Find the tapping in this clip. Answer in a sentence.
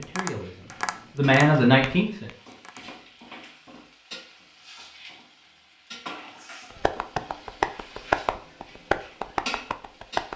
You can hear the tapping from 0.0 to 3.2 s and from 6.7 to 10.3 s.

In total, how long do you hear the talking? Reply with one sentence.
The talking can be heard for 2 seconds in total.